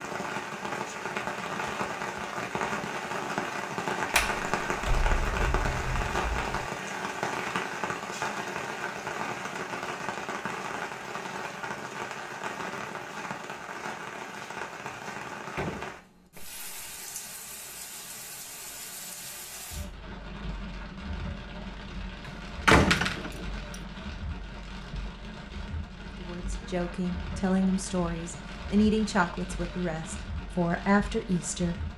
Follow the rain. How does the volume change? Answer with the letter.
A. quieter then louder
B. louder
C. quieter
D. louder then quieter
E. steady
C.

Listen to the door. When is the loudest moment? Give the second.
23 s.